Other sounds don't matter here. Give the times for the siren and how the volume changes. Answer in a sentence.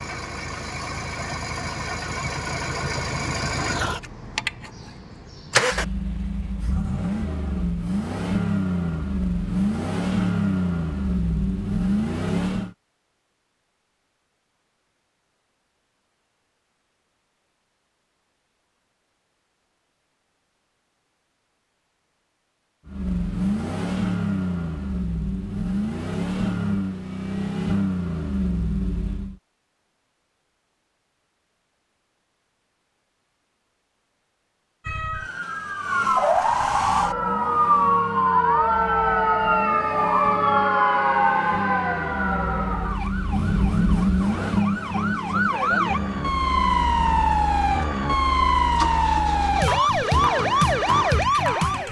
You can hear the siren from 34.8 to 51.8 s, getting quieter then louder.